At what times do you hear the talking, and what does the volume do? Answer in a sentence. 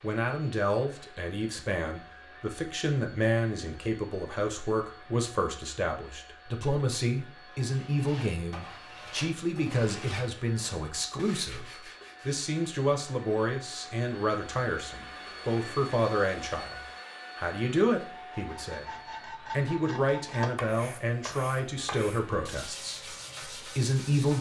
You can hear the talking from 0.0 to 24.3 s, at a steady volume.